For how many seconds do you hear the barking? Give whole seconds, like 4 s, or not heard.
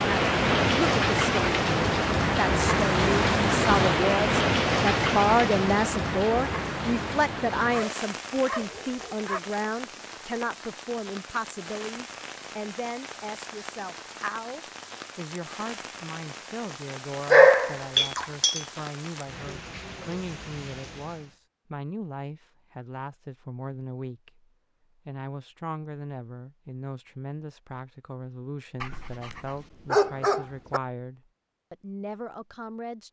5 s.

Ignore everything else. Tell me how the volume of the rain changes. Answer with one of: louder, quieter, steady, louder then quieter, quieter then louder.
quieter.